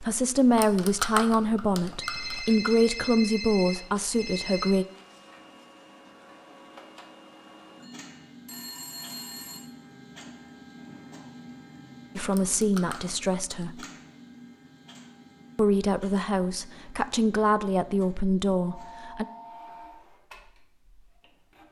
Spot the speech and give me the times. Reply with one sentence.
The speech can be heard from 0.0 to 4.8 s, from 12.2 to 13.8 s and from 15.6 to 19.2 s.